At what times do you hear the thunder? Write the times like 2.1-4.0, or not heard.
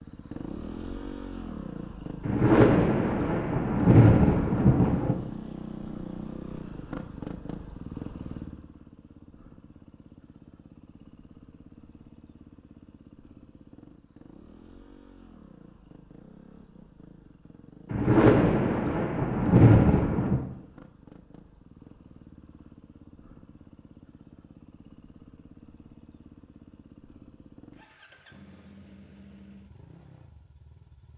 2.2-5.2, 17.9-20.4.